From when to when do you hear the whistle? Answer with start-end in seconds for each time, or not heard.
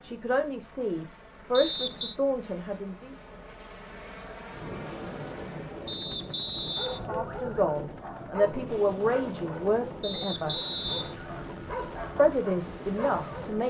1.5-2.1, 5.8-7.0, 10.0-11.2.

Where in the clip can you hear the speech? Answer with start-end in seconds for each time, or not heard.
0.0-3.1, 7.0-10.6, 12.2-13.6.